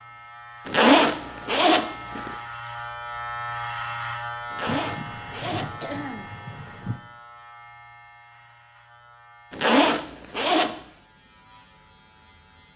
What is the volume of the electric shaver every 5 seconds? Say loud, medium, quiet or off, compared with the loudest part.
loud, medium, quiet.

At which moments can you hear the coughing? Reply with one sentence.
The coughing can be heard from 4.7 to 7.0 s.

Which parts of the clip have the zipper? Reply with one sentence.
You can hear the zipper from 0.7 to 2.3 s, from 4.5 to 6.2 s and from 9.5 to 10.8 s.